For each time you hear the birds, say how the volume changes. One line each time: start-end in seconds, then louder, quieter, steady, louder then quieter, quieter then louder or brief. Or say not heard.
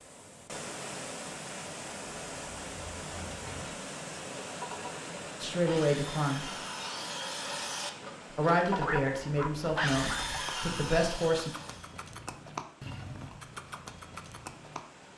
not heard.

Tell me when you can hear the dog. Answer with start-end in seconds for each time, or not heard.
8.8-10.4.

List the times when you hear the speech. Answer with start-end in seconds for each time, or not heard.
5.4-6.5, 8.3-11.5.